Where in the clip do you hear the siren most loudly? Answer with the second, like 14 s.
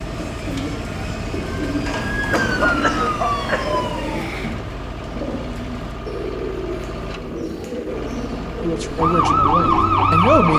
10 s.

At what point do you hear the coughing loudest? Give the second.
3 s.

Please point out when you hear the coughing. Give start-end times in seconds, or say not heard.
1.9-4.5.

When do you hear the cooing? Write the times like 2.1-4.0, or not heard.
0.0-10.5.